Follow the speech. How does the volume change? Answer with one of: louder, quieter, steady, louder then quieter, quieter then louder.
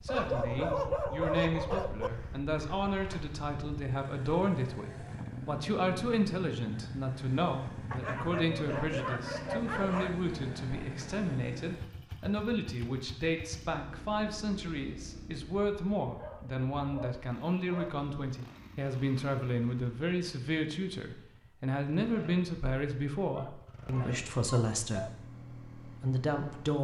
steady.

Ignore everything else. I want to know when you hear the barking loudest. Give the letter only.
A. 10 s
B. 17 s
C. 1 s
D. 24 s
C.